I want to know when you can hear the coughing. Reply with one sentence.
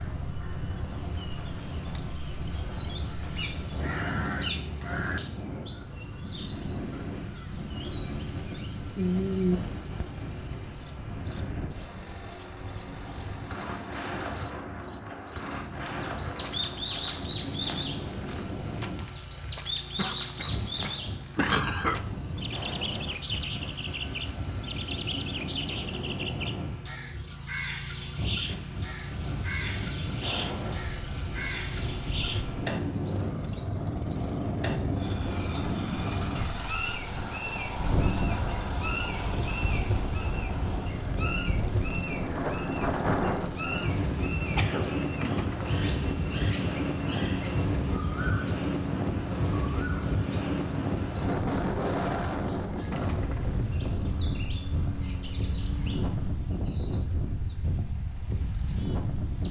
You can hear the coughing from 19.9 to 22.0 s and from 44.5 to 45.5 s.